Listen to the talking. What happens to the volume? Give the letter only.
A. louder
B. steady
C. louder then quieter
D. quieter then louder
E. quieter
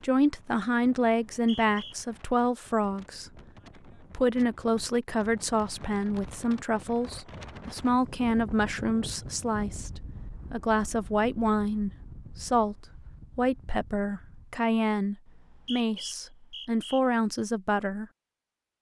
B.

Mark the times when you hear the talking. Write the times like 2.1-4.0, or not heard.
0.0-3.3, 4.1-12.8, 13.3-18.1.